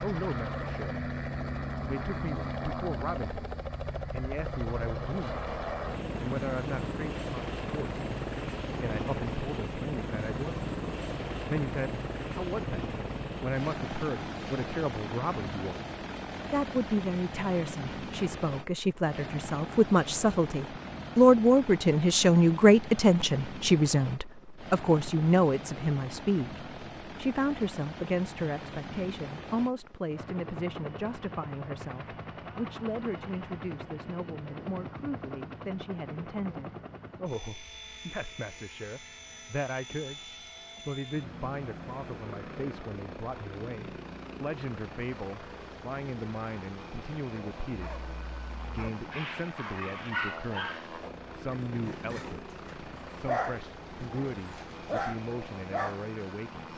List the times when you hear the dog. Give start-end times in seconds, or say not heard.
47.7-56.0.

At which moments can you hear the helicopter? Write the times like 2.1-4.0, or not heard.
0.0-56.7.